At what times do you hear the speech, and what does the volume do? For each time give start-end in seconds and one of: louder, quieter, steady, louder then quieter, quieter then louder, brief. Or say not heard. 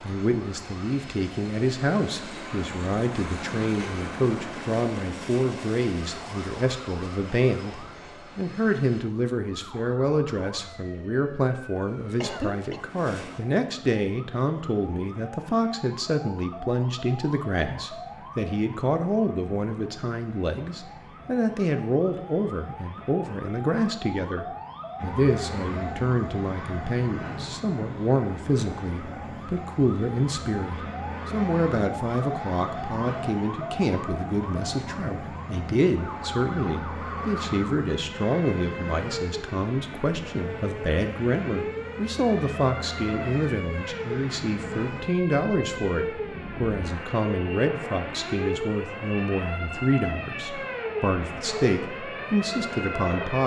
0.0-53.4 steady.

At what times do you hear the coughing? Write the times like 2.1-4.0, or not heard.
11.8-12.8.